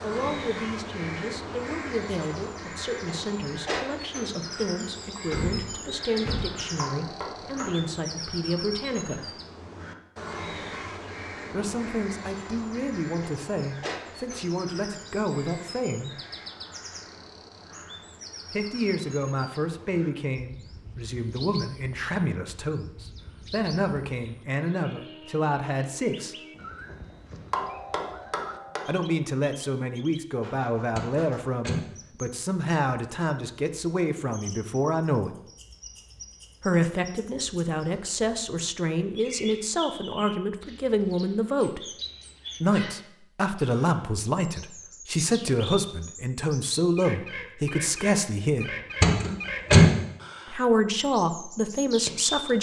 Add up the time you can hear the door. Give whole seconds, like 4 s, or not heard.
3 s.